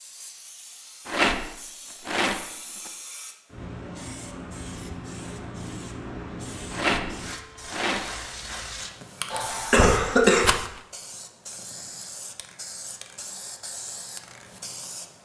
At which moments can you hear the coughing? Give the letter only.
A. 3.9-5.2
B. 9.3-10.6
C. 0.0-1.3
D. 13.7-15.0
B.